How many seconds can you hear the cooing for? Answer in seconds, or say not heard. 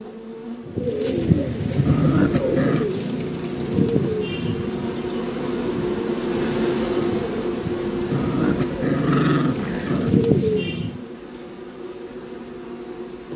10 s.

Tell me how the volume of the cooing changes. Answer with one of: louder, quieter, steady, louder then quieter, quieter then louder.
quieter then louder.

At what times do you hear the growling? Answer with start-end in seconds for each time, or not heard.
1.9-2.9, 8.1-10.1.